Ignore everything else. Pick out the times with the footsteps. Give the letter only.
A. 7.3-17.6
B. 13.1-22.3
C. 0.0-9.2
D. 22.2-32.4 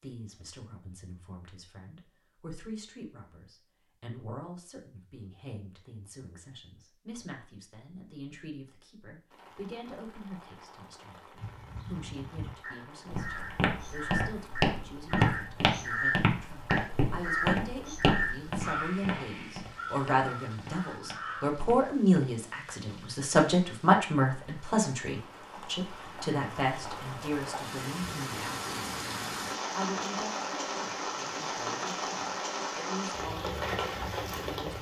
B.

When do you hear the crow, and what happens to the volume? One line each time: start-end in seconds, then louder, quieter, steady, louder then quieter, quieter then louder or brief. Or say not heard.
11.3-21.6 louder then quieter.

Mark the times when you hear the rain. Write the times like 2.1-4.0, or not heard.
9.3-34.7.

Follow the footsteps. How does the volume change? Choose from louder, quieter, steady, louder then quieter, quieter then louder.
quieter.